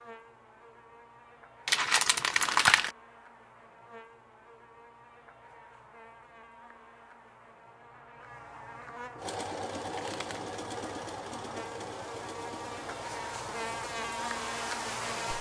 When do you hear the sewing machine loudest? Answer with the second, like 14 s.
10 s.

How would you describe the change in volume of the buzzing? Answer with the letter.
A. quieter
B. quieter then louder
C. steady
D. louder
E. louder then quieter
D.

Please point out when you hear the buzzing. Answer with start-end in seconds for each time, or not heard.
0.0-15.3.